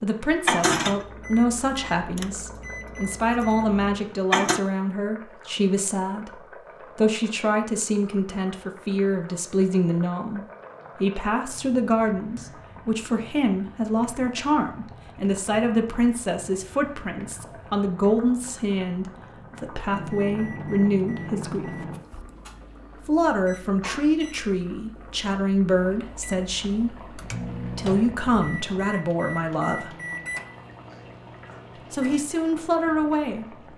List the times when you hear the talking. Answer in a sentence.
You can hear the talking from 0.0 to 21.8 s, from 22.9 to 29.9 s and from 31.9 to 33.6 s.